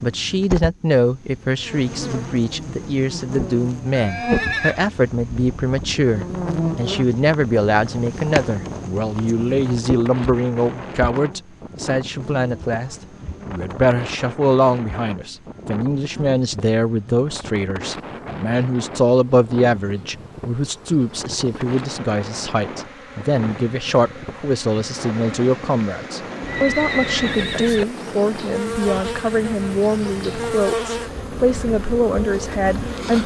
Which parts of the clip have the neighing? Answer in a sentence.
The neighing can be heard from 3.9 to 4.8 s and from 26.4 to 27.9 s.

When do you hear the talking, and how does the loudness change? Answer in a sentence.
You can hear the talking from 0.0 to 33.2 s, at a steady volume.